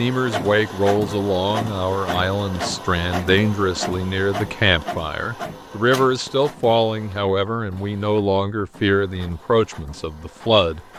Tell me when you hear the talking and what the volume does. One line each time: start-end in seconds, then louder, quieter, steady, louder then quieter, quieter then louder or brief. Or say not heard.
0.0-10.8 steady.